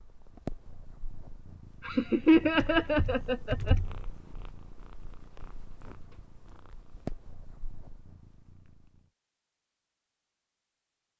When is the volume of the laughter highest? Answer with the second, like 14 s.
2 s.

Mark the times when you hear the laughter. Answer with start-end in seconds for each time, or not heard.
1.8-3.8.